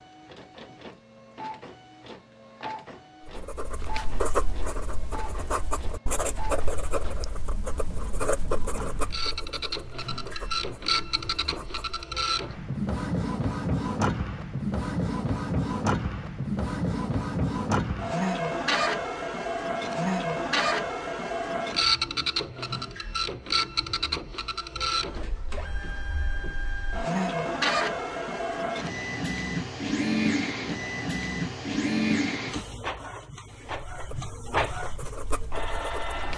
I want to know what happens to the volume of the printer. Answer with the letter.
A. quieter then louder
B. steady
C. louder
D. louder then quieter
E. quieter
C.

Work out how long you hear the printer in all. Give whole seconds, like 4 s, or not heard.
36 s.